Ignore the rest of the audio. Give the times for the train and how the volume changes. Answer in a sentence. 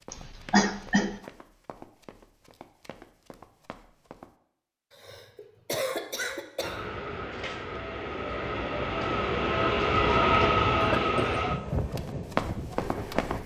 The train can be heard from 6.6 to 13.4 s, getting louder then quieter.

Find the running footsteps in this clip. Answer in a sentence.
The running footsteps can be heard from 0.0 to 4.3 s and from 11.7 to 13.4 s.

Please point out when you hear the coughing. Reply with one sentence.
The coughing can be heard from 0.1 to 1.1 s, from 4.9 to 6.8 s and from 10.8 to 11.4 s.